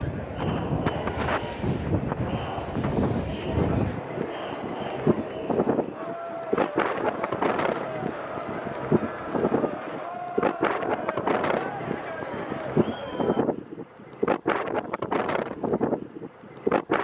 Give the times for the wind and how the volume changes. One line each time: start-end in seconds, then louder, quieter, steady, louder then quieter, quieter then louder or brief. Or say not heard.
0.0-16.9 steady.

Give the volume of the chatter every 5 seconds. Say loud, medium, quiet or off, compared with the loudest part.
loud, loud, loud, off.